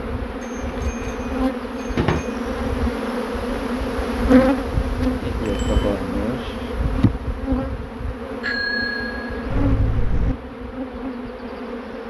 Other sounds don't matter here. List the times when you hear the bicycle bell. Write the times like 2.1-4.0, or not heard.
0.4-2.4, 5.5-5.9, 8.4-10.3.